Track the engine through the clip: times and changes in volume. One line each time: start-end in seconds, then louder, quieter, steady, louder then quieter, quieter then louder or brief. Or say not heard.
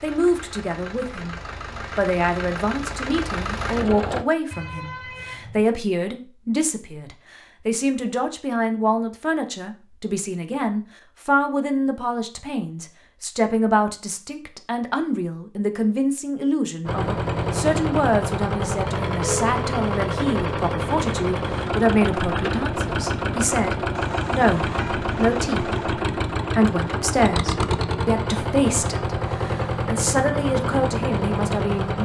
0.0-4.2 louder
16.9-32.0 steady.